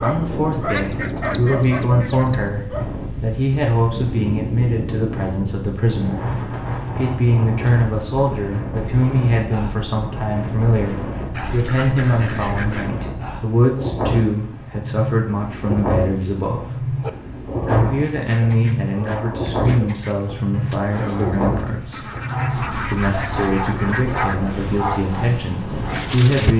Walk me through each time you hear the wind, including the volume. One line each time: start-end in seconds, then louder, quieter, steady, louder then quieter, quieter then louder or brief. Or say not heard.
0.0-26.5 steady.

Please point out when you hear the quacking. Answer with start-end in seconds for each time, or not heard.
0.6-2.5, 11.3-12.9, 21.9-24.6.